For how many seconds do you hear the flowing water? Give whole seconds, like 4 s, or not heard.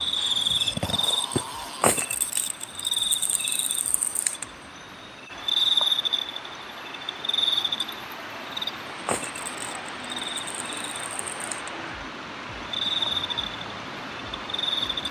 15 s.